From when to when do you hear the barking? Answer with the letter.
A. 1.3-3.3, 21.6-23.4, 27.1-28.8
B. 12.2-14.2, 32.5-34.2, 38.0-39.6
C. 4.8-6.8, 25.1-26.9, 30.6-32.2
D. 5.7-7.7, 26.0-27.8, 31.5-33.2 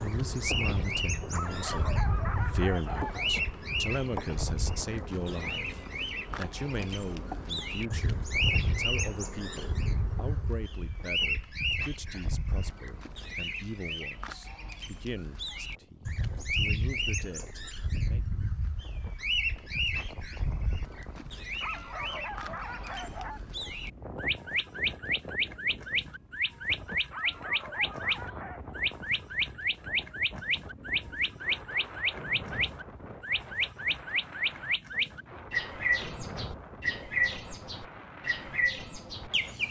A.